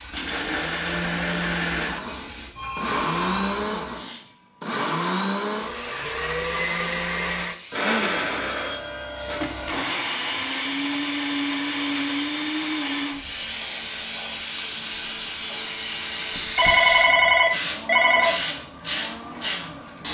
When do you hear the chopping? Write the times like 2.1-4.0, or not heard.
not heard.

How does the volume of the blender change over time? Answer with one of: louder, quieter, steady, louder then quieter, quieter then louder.
quieter.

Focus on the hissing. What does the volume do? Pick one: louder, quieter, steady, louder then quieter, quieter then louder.
louder.